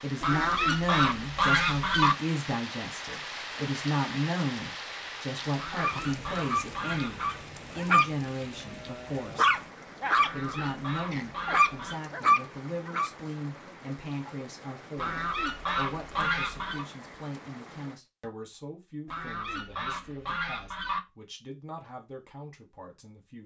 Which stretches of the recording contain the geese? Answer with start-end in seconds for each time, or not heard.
0.2-2.1, 5.5-7.3, 10.2-11.9, 14.9-16.9, 19.1-21.0.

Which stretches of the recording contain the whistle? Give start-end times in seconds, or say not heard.
not heard.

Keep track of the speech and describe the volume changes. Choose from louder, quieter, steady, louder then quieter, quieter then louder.
quieter.